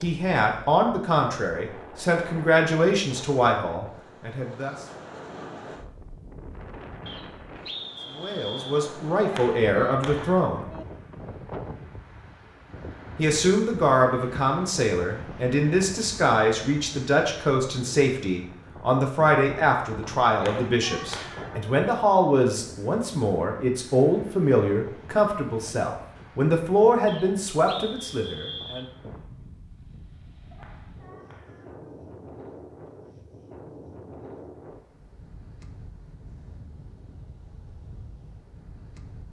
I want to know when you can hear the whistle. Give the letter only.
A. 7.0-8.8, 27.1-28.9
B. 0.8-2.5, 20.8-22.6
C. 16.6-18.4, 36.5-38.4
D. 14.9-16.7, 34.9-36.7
A.